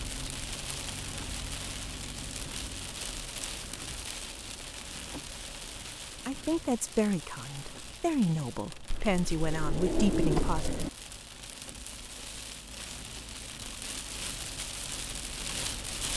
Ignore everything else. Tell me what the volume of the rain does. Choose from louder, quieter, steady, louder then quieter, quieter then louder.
quieter then louder.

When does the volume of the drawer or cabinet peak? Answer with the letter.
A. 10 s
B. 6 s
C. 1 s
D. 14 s
A.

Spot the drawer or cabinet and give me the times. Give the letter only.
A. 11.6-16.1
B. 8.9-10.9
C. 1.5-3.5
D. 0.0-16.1
B.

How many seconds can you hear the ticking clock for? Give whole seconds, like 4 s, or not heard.
not heard.